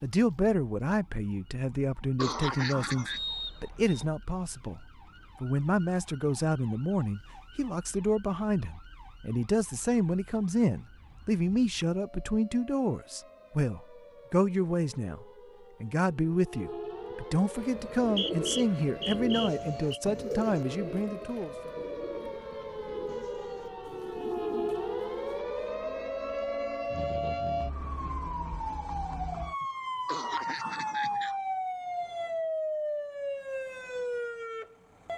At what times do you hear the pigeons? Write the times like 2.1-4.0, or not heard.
17.6-25.4.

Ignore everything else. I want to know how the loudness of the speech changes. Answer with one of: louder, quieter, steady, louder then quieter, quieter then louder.
steady.